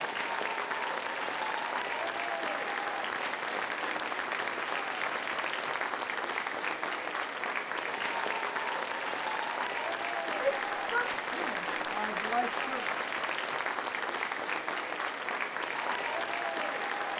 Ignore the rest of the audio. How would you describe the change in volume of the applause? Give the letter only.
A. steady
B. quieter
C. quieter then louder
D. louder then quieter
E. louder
A.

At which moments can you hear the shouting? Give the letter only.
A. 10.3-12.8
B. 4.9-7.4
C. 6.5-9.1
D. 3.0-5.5
A.